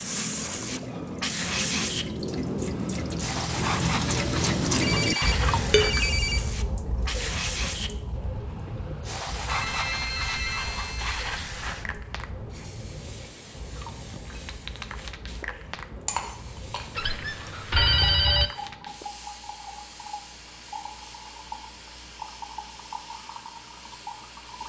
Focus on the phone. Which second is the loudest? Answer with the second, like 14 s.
18 s.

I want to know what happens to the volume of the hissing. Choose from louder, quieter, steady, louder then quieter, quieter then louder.
quieter.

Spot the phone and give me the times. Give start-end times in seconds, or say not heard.
4.8-6.4, 9.4-12.1, 16.9-18.5.